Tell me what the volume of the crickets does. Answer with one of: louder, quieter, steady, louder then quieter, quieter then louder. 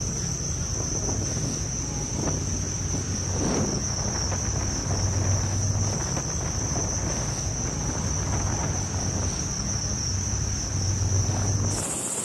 steady.